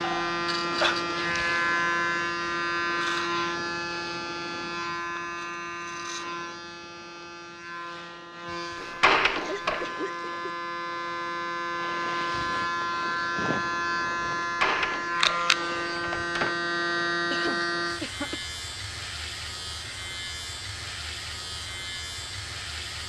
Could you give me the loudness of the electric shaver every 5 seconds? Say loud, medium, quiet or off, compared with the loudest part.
loud, medium, loud, loud, medium.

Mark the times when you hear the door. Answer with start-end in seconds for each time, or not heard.
8.8-9.9, 14.4-16.6.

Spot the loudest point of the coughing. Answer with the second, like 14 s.
1 s.